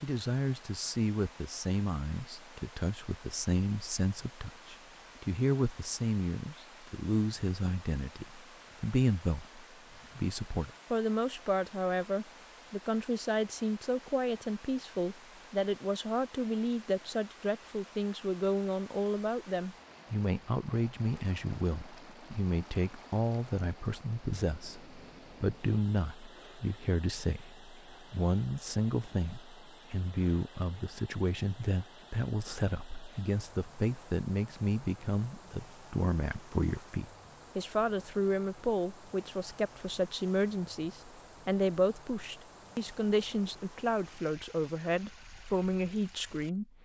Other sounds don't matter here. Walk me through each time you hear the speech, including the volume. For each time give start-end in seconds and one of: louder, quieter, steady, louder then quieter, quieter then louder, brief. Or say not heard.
0.0-46.6 steady.